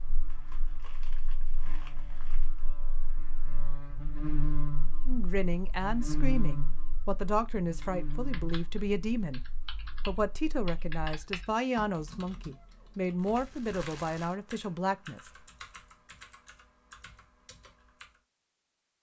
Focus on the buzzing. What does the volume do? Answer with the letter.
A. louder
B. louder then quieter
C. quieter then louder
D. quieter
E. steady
B.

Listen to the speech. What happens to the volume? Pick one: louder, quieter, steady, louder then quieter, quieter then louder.
steady.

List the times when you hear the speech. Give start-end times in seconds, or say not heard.
5.0-15.3.